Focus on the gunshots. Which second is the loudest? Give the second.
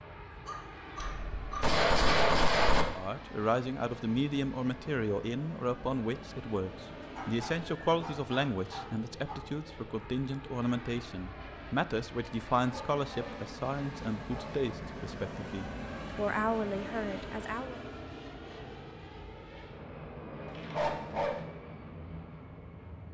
2 s.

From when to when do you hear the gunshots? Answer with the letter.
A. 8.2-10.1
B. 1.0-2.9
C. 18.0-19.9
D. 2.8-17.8
B.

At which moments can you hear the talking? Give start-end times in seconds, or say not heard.
2.8-17.8.